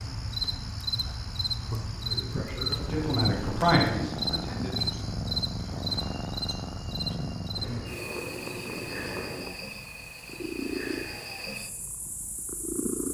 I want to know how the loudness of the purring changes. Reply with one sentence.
The loudness of the purring stays about the same.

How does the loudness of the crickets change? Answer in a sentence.
The loudness of the crickets goes down.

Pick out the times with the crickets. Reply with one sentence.
You can hear the crickets from 0.0 to 13.0 s.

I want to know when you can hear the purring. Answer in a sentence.
You can hear the purring from 2.8 to 13.0 s.